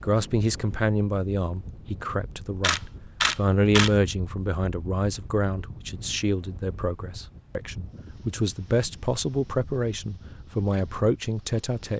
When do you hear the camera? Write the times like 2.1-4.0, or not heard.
2.6-3.9.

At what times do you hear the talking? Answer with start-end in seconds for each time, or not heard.
0.0-11.9.